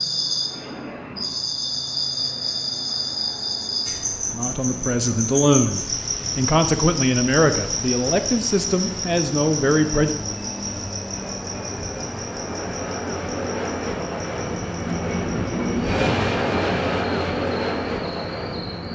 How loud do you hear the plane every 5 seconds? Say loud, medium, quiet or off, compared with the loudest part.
quiet, quiet, medium, loud.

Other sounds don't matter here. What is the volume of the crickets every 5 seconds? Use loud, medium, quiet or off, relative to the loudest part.
loud, loud, medium, quiet.